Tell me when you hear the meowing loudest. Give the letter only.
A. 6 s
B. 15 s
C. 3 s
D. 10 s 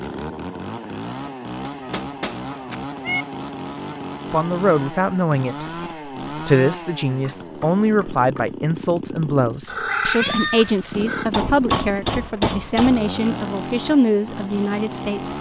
D.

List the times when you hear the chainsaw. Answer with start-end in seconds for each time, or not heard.
0.0-15.3.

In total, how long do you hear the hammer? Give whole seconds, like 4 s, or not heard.
4 s.